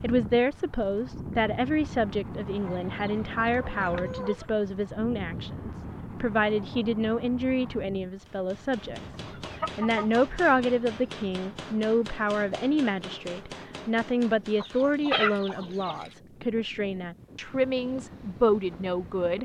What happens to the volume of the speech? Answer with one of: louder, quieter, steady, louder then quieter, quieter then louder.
steady.